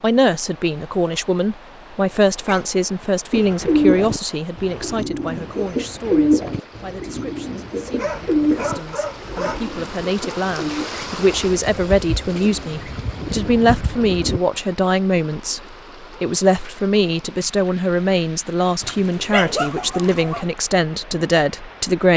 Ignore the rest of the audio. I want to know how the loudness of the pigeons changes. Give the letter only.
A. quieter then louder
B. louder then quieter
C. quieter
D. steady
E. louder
C.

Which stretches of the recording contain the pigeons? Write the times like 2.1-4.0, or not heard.
3.3-14.4.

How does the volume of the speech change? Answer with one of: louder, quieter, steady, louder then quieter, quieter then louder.
quieter then louder.